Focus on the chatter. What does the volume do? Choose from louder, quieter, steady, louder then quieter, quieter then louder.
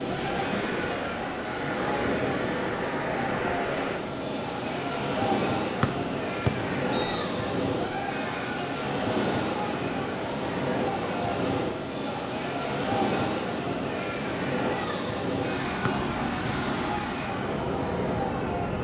steady.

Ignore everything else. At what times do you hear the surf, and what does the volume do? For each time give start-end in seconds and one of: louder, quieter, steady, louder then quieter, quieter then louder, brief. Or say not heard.
0.0-18.7 steady.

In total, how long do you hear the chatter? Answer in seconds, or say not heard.
19 s.